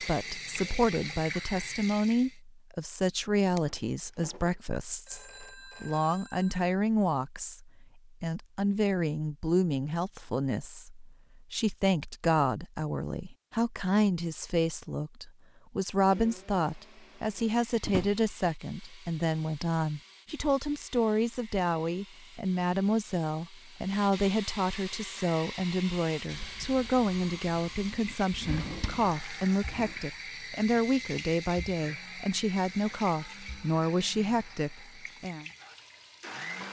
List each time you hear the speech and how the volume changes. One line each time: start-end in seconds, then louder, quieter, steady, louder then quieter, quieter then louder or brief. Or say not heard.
0.0-35.5 steady.